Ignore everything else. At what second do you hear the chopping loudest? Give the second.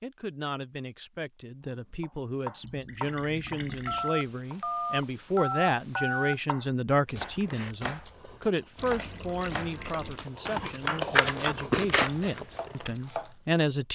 11 s.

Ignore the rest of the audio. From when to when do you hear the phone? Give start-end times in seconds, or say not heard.
3.9-6.4.